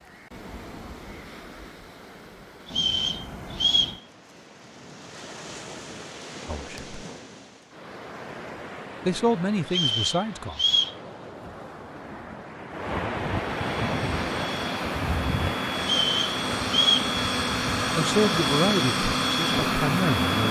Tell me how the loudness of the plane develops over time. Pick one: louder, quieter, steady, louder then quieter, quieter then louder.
louder.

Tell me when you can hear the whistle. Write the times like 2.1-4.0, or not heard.
2.6-4.0, 9.7-10.9, 15.8-17.1.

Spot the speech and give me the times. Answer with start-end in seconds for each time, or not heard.
6.5-7.0, 9.1-10.6, 17.9-20.4.